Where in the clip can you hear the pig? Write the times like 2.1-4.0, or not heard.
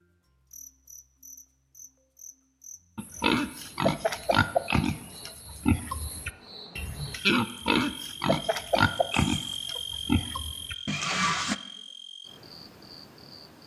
3.0-11.6.